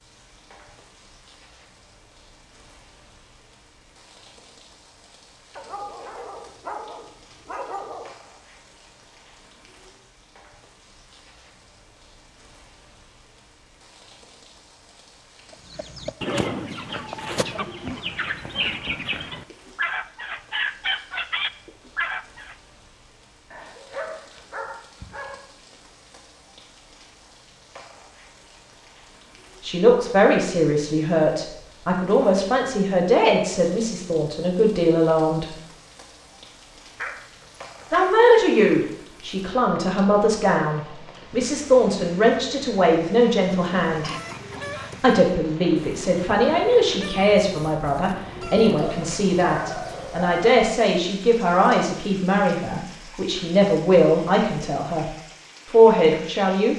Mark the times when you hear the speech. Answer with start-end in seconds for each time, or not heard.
29.6-35.5, 37.9-44.1, 45.0-56.7.